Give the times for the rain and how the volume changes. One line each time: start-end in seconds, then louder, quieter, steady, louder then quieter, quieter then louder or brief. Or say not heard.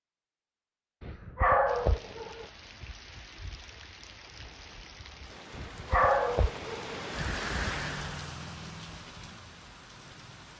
1.6-10.5 louder then quieter.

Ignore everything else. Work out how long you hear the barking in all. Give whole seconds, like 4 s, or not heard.
3 s.